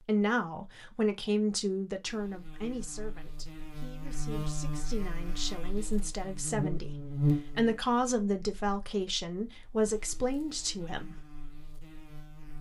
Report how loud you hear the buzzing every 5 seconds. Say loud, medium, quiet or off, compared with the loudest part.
medium, loud, quiet.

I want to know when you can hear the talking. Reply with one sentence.
The talking can be heard from 0.0 to 11.2 s.